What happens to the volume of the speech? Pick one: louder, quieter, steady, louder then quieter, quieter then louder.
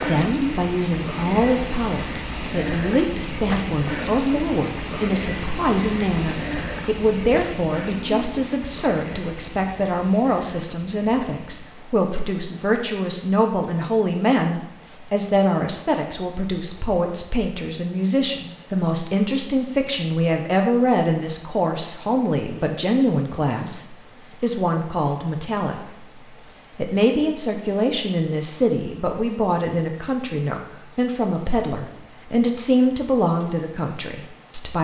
steady.